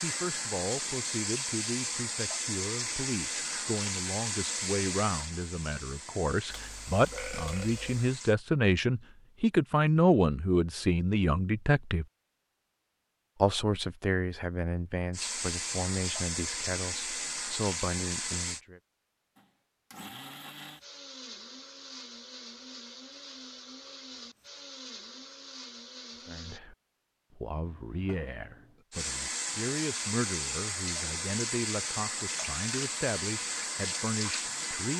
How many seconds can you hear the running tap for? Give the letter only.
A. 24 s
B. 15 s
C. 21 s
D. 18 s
D.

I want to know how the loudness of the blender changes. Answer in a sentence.
The loudness of the blender stays about the same.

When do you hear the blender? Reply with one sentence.
You can hear the blender from 19.4 to 26.6 s.